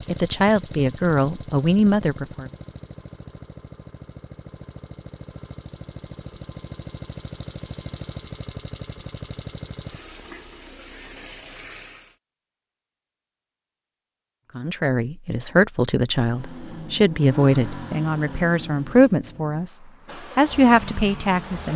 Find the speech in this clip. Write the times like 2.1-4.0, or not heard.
0.1-2.5, 14.6-19.8, 20.4-21.7.